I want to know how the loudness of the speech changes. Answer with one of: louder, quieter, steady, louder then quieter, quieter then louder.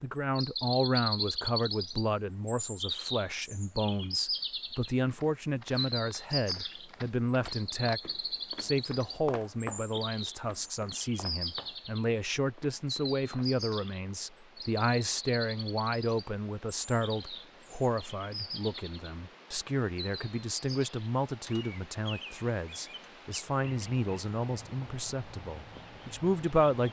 steady.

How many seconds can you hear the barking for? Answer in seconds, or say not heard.
not heard.